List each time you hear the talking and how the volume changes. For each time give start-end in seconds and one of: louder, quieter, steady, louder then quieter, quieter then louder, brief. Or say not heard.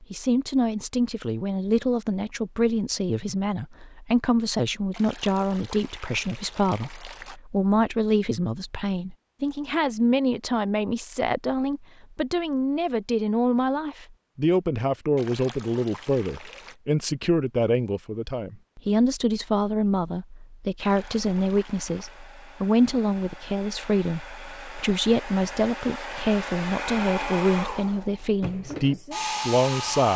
0.0-30.1 steady.